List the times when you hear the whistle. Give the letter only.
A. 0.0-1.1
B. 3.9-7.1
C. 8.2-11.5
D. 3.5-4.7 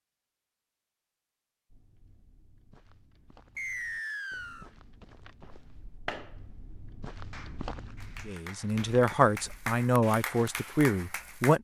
D.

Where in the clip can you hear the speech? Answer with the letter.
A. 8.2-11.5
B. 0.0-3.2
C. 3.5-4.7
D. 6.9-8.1
A.